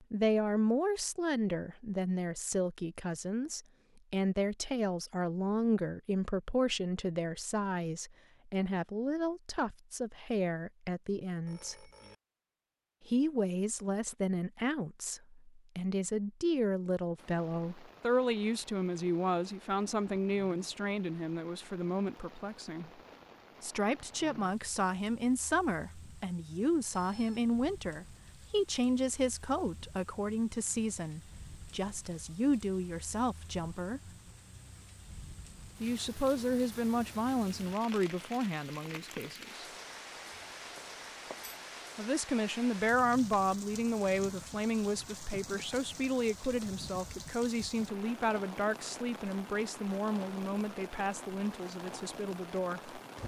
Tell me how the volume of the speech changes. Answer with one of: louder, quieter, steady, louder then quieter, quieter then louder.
steady.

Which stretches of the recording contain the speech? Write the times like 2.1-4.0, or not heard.
0.1-11.8, 13.1-22.9, 23.6-34.1, 35.8-39.6, 42.0-53.0.